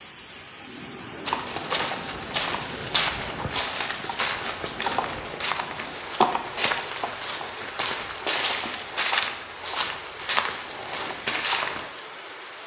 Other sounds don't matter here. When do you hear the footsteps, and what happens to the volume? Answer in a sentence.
The footsteps can be heard from 1.2 to 11.9 s, at a steady volume.